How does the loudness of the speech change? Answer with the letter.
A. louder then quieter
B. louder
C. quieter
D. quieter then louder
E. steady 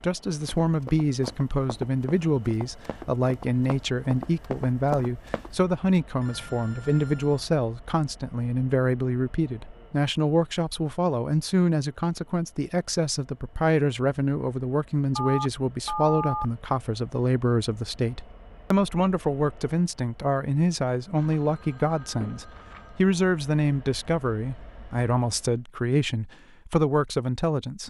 E.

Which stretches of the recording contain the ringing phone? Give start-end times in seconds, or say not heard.
6.2-7.5, 15.2-16.4, 21.1-22.9.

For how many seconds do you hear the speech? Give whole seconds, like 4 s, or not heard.
28 s.